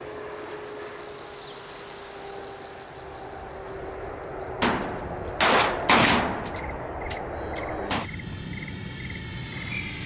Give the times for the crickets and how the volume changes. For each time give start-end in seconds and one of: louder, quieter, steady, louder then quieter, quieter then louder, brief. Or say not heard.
0.1-10.0 quieter.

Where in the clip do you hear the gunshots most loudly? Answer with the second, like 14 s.
6 s.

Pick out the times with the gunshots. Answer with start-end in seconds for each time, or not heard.
4.6-8.1.